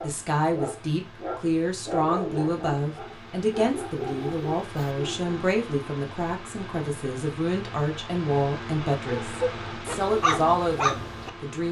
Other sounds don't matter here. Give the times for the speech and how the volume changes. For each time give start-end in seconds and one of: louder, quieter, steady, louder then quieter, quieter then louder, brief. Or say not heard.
0.0-11.6 steady.